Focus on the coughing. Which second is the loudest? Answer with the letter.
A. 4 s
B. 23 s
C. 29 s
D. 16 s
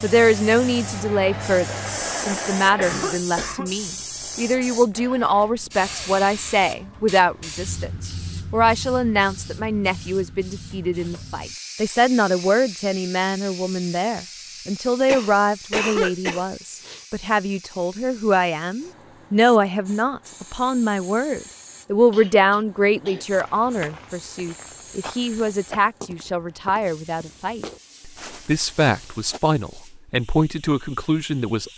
D.